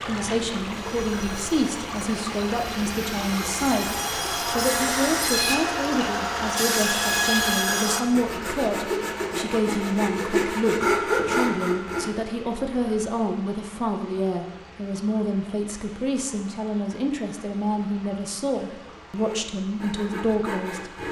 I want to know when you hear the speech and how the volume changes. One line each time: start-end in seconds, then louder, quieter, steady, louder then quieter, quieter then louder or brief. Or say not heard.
0.0-21.0 steady.